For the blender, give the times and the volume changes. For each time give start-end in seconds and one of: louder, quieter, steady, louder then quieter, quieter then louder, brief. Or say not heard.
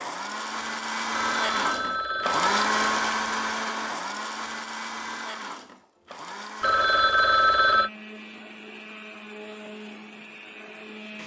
0.0-11.2 quieter.